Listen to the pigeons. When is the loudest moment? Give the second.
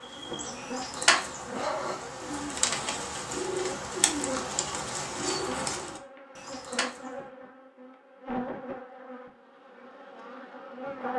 1 s.